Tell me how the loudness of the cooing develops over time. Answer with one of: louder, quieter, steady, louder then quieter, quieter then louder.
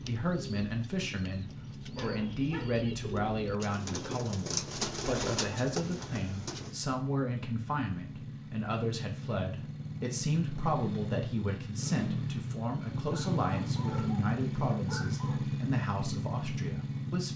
louder.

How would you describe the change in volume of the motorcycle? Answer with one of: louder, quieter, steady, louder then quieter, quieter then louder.
louder.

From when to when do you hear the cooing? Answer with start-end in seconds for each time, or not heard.
0.0-6.8.